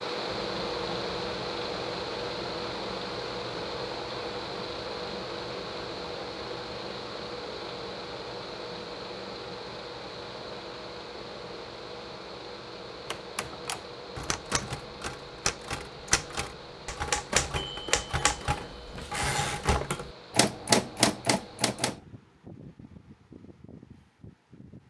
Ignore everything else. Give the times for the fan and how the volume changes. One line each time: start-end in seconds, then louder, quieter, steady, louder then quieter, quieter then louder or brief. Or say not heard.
0.0-24.8 quieter.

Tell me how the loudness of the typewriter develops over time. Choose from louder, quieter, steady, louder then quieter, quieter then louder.
louder.